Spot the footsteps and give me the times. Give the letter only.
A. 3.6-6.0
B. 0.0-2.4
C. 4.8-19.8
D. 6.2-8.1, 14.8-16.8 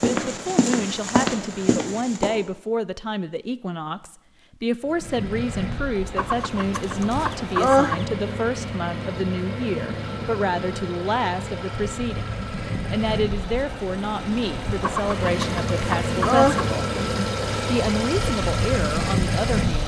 B.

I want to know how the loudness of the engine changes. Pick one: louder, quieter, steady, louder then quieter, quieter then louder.
louder.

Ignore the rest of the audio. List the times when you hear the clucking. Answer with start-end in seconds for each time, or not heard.
6.2-8.1, 14.8-16.8.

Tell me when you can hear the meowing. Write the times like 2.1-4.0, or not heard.
not heard.